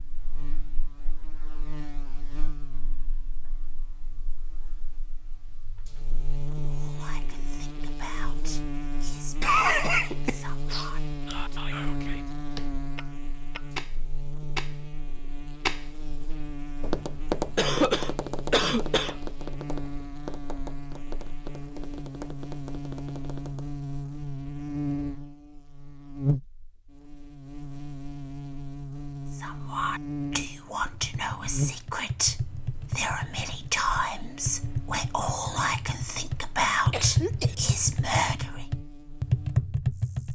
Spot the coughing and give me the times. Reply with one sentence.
You can hear the coughing from 9.4 to 11.3 s, from 17.6 to 19.1 s and from 36.9 to 37.5 s.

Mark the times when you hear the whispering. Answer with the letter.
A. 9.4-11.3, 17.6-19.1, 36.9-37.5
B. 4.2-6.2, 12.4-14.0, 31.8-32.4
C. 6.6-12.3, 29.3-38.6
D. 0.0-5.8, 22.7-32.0
C.